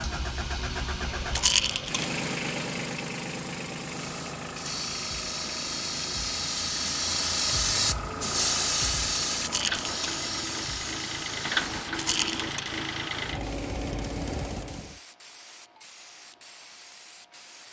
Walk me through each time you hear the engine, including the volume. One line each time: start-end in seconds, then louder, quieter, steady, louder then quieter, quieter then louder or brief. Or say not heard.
0.0-15.0 quieter then louder.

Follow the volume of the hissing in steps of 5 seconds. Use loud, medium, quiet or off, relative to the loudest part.
medium, loud, medium, quiet.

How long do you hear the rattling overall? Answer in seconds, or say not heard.
2 s.